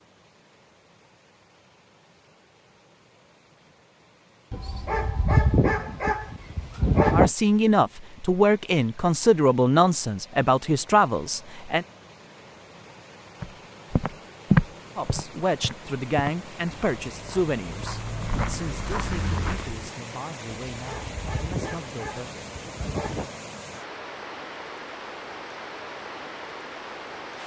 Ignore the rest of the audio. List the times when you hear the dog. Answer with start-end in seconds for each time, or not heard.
4.5-7.3, 20.7-23.4.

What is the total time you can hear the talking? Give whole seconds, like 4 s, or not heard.
12 s.